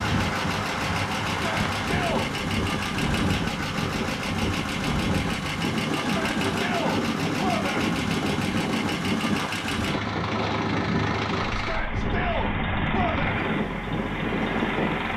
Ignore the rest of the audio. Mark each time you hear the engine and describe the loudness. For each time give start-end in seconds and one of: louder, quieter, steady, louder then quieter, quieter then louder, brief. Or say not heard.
0.0-15.1 steady.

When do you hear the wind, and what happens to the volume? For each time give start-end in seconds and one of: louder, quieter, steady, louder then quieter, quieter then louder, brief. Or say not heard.
0.0-15.1 steady.